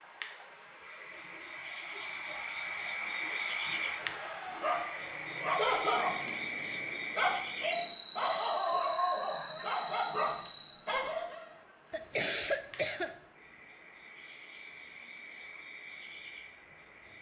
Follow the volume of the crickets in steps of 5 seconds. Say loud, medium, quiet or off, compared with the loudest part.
loud, loud, medium, medium.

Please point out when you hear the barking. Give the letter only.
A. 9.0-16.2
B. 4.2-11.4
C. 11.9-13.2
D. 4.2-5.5
B.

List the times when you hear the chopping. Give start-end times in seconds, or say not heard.
not heard.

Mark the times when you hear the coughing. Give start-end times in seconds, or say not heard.
11.9-13.2.